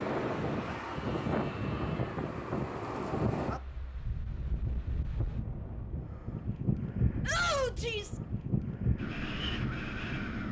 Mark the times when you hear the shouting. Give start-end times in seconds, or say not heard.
0.7-2.3, 7.2-8.2.